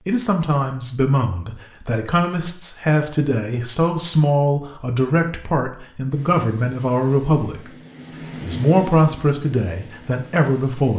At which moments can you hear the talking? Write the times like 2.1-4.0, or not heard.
0.1-10.9.